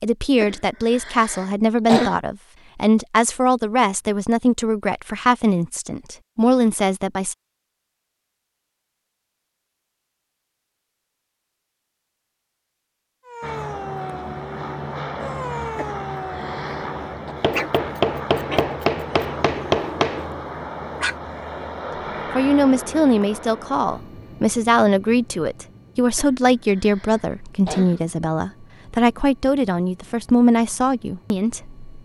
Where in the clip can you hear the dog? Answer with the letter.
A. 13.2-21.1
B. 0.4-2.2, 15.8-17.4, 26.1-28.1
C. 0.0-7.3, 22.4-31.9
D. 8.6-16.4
A.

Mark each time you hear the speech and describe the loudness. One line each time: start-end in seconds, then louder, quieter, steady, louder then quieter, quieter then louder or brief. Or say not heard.
0.0-7.3 steady
22.4-31.9 steady.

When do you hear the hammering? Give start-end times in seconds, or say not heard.
17.4-20.2.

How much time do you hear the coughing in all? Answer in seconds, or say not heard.
5 s.